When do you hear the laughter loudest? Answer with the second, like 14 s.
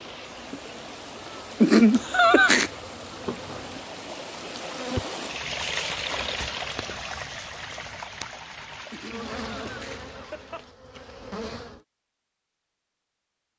2 s.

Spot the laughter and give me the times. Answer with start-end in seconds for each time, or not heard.
1.6-2.7, 8.9-10.7.